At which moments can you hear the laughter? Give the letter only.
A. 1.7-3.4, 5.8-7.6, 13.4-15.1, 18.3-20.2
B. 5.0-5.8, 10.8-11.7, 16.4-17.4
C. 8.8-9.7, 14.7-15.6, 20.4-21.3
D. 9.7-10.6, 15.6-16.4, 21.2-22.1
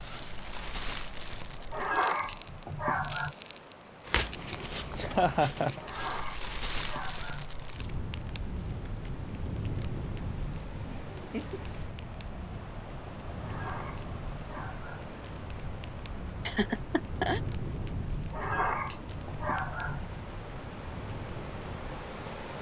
B.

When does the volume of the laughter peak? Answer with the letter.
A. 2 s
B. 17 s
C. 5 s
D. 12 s
C.